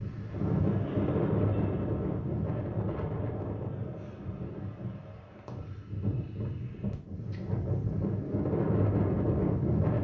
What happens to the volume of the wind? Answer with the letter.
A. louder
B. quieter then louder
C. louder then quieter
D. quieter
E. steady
B.